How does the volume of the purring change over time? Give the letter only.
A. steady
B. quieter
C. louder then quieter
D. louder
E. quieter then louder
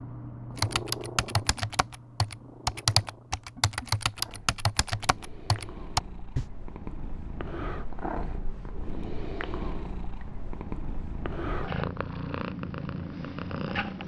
E.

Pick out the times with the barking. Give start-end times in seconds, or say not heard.
not heard.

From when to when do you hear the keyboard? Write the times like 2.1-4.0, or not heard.
0.6-6.5.